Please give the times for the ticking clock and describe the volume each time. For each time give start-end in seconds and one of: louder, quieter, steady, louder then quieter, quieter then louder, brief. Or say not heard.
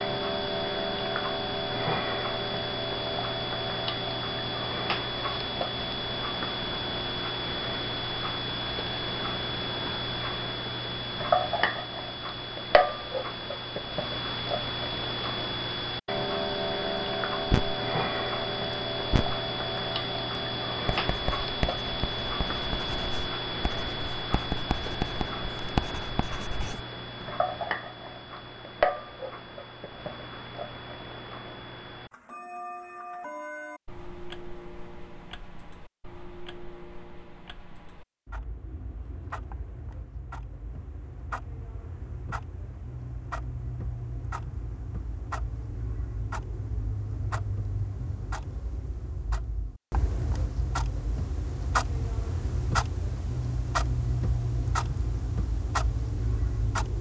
0.0-56.9 quieter then louder.